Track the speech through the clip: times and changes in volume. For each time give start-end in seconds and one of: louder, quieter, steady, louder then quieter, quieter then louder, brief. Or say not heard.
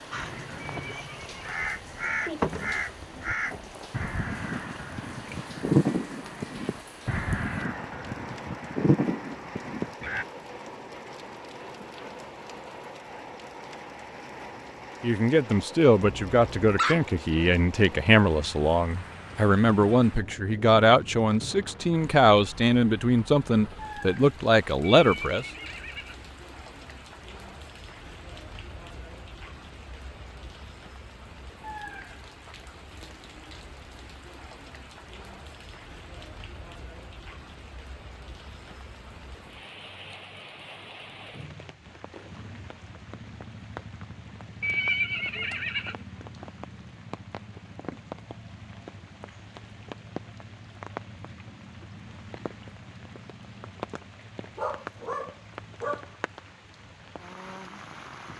15.0-25.4 steady.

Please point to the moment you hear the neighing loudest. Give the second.
45 s.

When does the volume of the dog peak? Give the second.
17 s.